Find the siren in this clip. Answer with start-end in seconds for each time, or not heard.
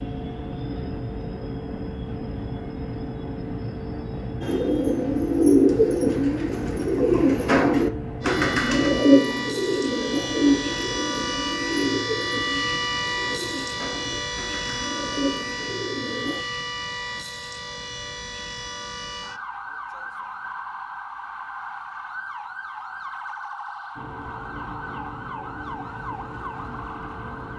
8.2-27.5.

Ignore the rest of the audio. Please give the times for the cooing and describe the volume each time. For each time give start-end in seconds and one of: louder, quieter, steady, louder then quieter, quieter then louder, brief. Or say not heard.
4.4-16.4 quieter.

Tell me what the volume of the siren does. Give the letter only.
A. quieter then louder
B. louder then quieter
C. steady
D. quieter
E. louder
D.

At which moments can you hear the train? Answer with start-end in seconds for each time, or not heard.
0.0-9.1, 23.9-27.5.